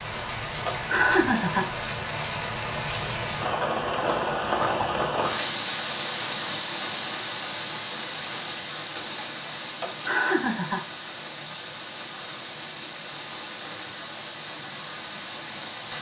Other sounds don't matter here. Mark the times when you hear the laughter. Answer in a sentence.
You can hear the laughter from 0.7 to 1.6 s and from 9.8 to 10.8 s.